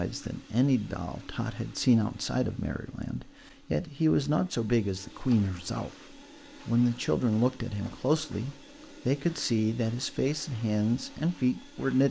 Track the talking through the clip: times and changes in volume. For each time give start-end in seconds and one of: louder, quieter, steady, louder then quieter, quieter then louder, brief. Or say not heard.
0.0-12.0 steady.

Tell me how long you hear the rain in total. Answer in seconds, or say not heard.
not heard.